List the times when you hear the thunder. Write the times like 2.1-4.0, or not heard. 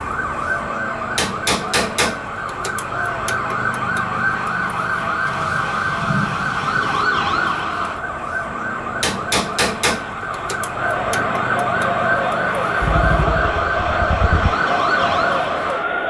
5.2-6.9.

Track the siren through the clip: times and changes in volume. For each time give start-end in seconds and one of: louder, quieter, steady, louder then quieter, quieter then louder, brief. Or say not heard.
0.0-16.0 steady.